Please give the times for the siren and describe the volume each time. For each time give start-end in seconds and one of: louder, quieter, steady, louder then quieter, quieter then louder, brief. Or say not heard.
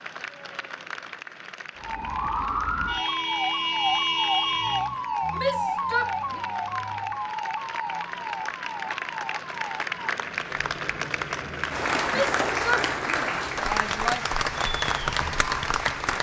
1.8-16.1 quieter.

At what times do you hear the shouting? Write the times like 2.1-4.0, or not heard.
5.3-6.4, 12.1-14.2.